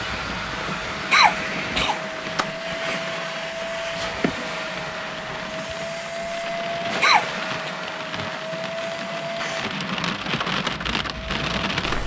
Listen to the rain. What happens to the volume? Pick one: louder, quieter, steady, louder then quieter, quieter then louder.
louder.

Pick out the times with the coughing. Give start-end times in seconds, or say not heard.
1.1-3.0, 7.0-7.7.